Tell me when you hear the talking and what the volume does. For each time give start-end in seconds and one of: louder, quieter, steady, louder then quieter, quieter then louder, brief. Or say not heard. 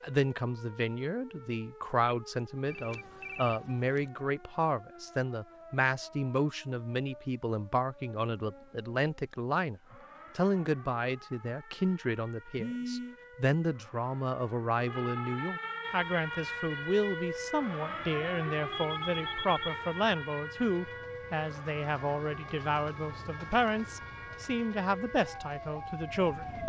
0.0-26.6 steady.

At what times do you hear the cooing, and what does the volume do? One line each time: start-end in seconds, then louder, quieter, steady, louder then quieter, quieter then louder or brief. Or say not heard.
not heard.